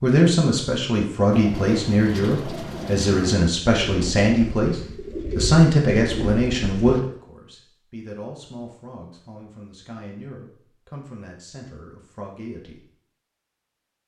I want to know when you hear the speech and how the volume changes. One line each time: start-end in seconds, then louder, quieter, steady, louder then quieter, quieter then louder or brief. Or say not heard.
0.0-12.8 quieter.